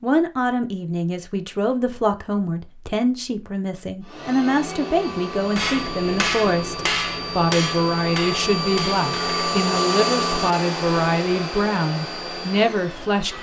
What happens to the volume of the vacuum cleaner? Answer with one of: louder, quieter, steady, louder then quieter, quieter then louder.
louder then quieter.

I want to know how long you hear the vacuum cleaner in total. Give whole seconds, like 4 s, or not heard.
9 s.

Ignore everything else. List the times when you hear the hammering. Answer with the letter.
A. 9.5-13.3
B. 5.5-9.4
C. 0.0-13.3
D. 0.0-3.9
B.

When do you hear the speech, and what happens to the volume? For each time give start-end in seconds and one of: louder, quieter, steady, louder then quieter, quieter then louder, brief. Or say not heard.
0.0-13.3 steady.